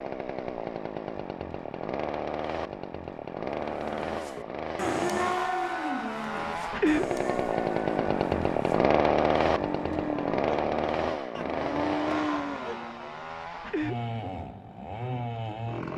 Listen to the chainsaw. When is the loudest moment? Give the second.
9 s.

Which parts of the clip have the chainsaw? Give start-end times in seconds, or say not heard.
0.0-15.9.